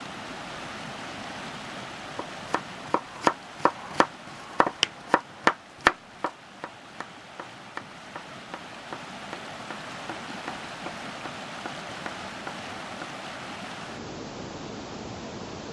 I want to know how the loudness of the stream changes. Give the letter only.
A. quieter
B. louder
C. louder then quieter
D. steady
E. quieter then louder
E.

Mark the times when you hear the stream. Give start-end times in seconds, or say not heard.
0.0-15.6.